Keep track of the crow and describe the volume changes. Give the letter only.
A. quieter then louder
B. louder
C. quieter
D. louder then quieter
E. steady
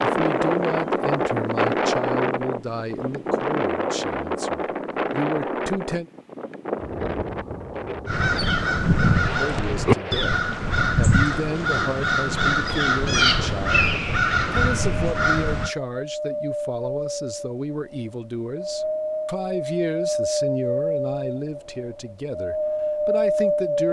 E.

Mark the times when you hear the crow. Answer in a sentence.
The crow can be heard from 8.1 to 15.7 s.